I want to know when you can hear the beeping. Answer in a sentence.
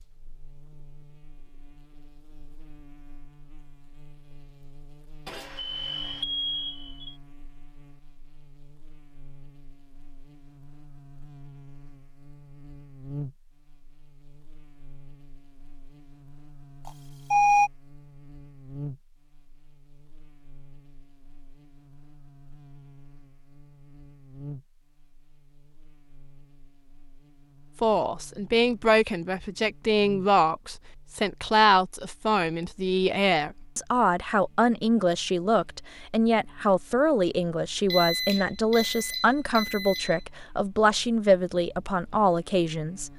You can hear the beeping from 5.2 to 7.2 s, from 16.9 to 17.7 s and from 37.9 to 40.2 s.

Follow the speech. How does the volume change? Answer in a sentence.
The loudness of the speech stays about the same.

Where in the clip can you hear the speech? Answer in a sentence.
You can hear the speech from 27.8 to 43.1 s.